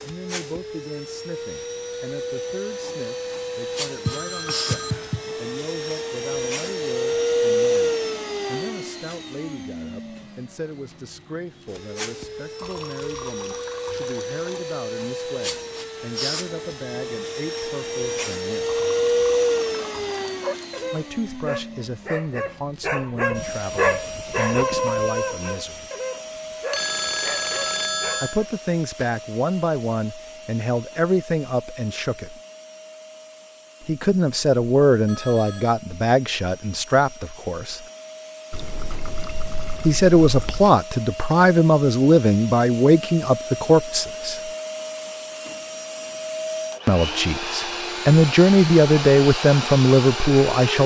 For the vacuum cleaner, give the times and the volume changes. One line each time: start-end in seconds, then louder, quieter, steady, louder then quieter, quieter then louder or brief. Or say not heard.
0.0-50.8 quieter then louder.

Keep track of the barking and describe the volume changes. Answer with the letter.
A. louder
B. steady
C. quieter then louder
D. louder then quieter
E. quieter
D.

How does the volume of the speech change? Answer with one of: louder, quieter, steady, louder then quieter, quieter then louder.
louder.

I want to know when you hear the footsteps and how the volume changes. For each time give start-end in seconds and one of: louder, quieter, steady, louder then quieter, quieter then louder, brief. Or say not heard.
not heard.